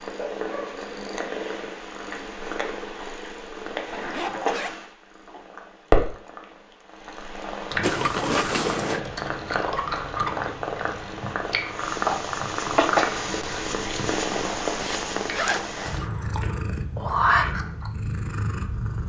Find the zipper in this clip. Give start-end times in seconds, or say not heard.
3.9-4.8, 7.8-9.0, 14.8-16.1.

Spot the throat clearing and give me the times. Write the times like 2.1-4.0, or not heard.
not heard.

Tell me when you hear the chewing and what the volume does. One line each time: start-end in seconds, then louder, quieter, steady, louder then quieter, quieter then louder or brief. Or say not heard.
7.7-17.9 quieter.